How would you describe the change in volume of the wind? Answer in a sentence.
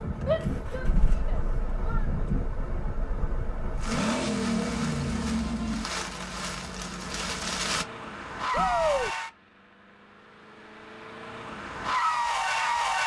The volume of the wind stays about the same.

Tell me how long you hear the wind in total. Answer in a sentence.
You can hear the wind for 8 seconds altogether.